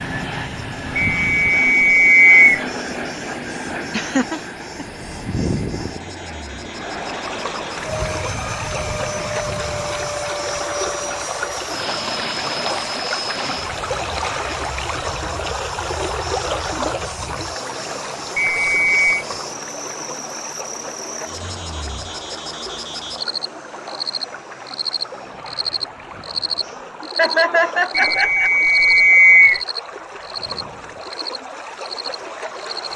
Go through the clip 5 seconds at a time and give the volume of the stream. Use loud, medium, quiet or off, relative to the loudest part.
off, loud, loud, loud, medium, medium, medium.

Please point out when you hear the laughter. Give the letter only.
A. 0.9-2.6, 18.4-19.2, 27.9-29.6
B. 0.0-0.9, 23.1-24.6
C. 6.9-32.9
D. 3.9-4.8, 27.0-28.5
D.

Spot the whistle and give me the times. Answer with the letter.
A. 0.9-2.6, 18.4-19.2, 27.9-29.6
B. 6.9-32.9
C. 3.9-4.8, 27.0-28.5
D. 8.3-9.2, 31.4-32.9
A.